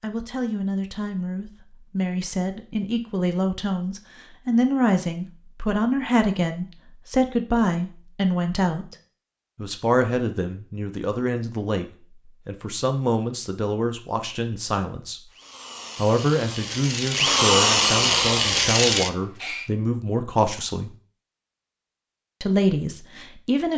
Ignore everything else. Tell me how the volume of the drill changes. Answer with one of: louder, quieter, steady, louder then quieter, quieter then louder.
louder.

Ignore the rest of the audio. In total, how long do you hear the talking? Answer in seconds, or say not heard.
21 s.